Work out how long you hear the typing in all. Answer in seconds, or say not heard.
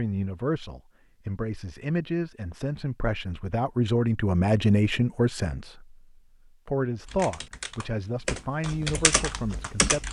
3 s.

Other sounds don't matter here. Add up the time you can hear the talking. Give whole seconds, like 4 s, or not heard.
9 s.